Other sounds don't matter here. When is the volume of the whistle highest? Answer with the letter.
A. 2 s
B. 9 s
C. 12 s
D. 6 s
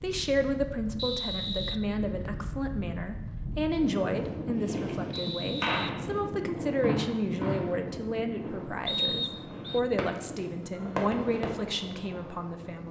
B.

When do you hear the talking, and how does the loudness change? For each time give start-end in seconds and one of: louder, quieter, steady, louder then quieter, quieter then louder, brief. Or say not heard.
0.0-12.8 steady.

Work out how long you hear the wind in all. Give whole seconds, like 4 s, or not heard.
13 s.